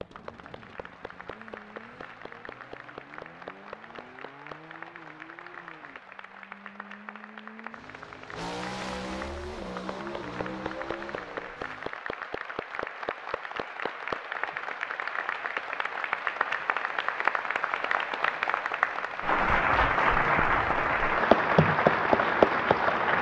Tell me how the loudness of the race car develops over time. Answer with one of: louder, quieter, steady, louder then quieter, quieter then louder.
louder.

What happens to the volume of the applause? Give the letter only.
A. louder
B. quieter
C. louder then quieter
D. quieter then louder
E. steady
A.